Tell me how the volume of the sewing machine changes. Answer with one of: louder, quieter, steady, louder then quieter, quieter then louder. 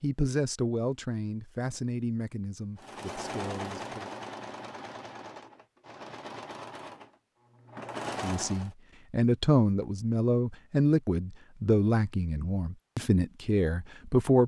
quieter then louder.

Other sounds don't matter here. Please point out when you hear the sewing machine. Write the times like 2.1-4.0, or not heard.
2.8-8.7.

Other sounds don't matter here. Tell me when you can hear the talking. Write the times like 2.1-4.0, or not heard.
0.0-4.1, 8.2-14.4.